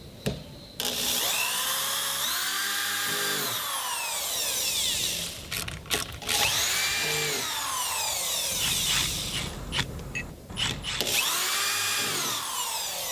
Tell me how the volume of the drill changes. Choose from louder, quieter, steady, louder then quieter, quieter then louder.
steady.